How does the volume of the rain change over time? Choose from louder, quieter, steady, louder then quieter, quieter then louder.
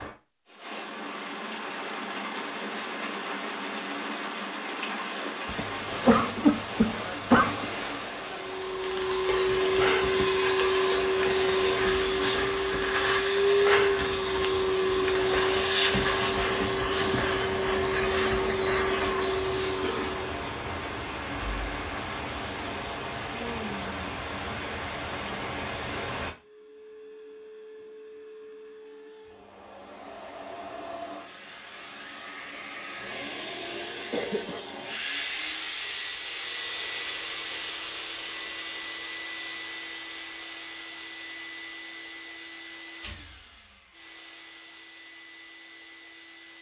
steady.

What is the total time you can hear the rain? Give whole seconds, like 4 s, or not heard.
26 s.